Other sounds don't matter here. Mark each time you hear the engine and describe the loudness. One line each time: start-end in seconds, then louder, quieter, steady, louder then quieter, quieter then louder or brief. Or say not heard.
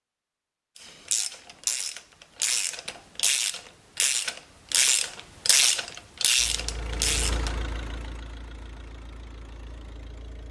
6.3-10.4 quieter.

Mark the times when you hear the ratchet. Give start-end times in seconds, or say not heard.
0.8-7.6.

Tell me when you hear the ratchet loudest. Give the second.
6 s.